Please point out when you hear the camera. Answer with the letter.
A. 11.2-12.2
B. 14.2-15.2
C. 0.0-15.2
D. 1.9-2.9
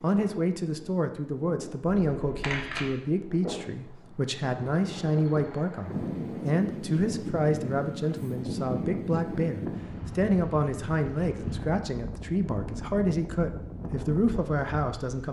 D.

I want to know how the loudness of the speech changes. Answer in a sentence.
The loudness of the speech stays about the same.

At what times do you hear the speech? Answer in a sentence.
The speech can be heard from 0.0 to 15.2 s.